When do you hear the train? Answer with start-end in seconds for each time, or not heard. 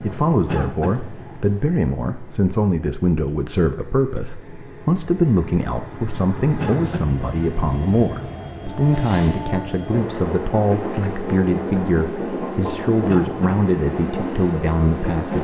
0.0-15.4.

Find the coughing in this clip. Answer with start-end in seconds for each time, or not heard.
0.5-1.1, 6.5-7.2, 13.1-13.5.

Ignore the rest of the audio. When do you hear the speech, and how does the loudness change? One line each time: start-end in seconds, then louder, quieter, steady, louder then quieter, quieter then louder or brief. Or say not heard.
0.0-15.4 steady.